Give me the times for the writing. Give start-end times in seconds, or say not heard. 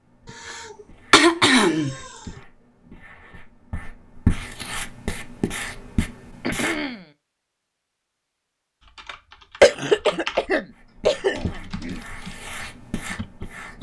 0.0-6.8, 10.7-13.7.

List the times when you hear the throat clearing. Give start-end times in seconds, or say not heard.
0.5-2.1, 6.4-7.1, 9.6-12.0.